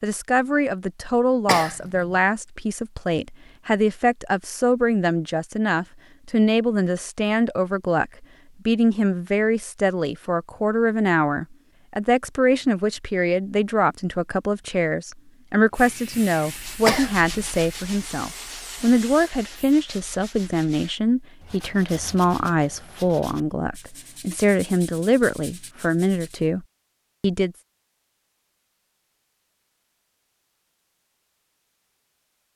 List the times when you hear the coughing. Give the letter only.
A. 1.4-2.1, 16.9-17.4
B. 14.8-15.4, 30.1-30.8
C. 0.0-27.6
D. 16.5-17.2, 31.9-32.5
A.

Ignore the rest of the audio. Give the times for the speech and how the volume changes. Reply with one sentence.
You can hear the speech from 0.0 to 27.6 s, at a steady volume.